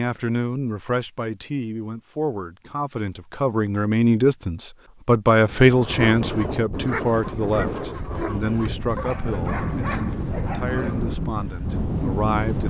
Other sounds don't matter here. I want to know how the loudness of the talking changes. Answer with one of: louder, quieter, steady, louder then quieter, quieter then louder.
louder then quieter.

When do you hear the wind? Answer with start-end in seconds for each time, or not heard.
5.3-12.6.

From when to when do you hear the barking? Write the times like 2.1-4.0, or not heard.
5.8-11.2.